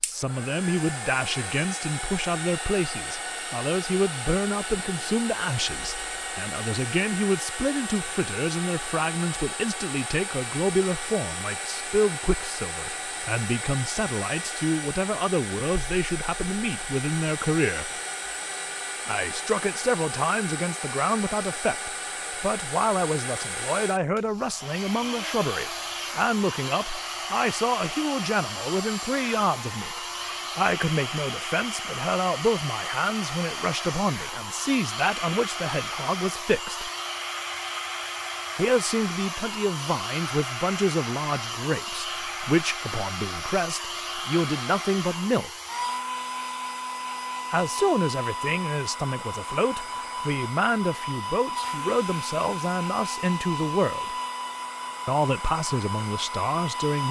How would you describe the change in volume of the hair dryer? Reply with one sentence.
The volume of the hair dryer stays about the same.